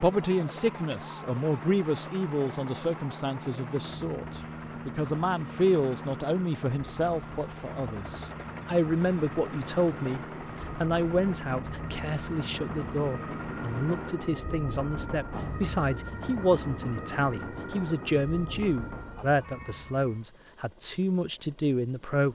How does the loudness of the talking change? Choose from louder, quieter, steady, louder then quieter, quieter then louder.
steady.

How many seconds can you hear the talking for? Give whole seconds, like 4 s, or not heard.
22 s.